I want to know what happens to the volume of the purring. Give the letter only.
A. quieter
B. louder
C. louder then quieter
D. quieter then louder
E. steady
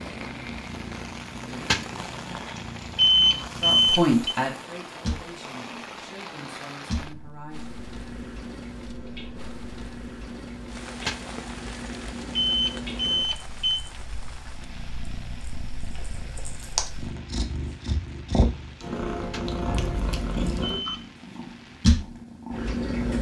B.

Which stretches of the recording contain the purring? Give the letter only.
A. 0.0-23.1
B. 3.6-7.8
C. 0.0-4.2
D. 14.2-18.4
A.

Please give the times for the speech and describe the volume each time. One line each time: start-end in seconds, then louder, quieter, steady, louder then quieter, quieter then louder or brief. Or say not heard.
3.6-7.8 quieter.